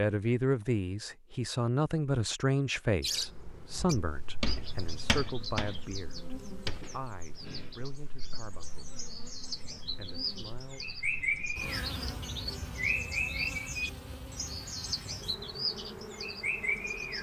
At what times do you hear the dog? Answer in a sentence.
The dog can't be heard in this clip.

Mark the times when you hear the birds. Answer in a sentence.
You can hear the birds from 3.0 to 17.1 s.